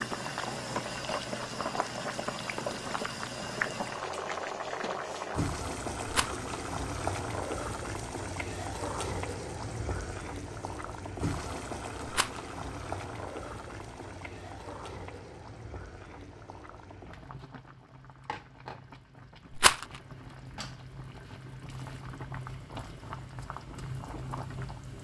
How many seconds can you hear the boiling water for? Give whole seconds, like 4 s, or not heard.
25 s.